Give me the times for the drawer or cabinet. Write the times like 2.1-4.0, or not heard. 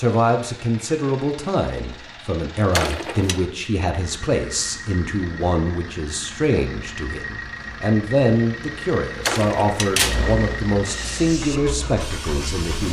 2.7-3.4, 9.2-10.2.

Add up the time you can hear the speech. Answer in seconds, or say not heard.
13 s.